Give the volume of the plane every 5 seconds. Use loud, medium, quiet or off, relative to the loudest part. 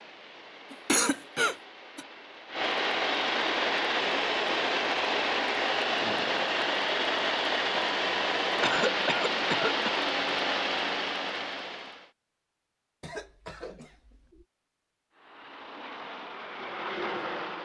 loud, loud, loud, medium.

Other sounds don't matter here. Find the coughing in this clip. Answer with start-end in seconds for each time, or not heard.
0.7-2.0, 8.6-10.0, 13.0-14.4.